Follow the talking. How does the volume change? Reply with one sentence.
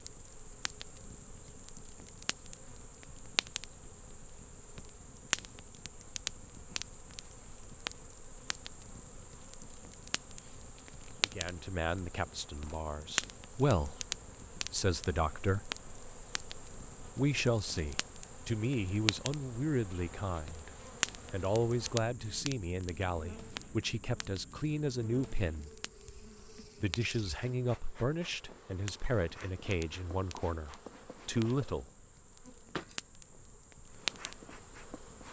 The loudness of the talking stays about the same.